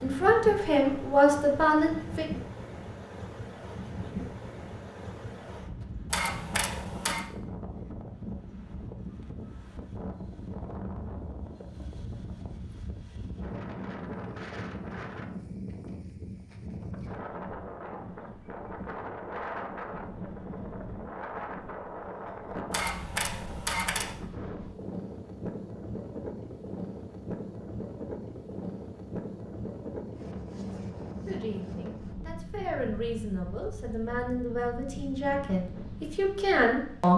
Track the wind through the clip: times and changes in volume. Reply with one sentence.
You can hear the wind from 0.0 to 37.1 s, at a steady volume.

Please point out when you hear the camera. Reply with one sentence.
The camera can be heard from 6.1 to 7.2 s and from 22.7 to 24.1 s.